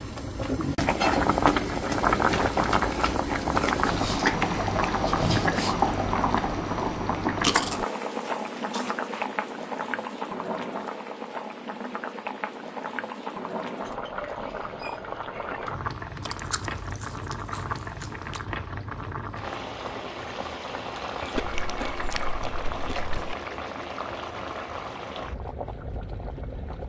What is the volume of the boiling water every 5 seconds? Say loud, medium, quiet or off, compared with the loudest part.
loud, loud, medium, medium, medium, quiet.